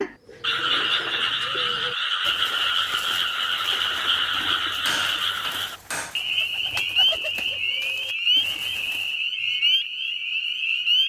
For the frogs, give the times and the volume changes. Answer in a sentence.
The frogs can be heard from 0.0 to 11.0 s, at a steady volume.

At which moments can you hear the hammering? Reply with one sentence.
The hammering can be heard from 4.7 to 6.2 s.